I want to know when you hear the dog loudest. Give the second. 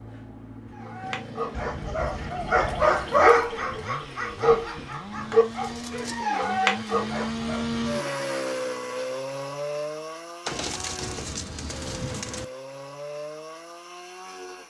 3 s.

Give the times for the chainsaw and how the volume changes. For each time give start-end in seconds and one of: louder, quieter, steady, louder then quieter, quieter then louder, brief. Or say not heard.
0.0-14.6 louder then quieter.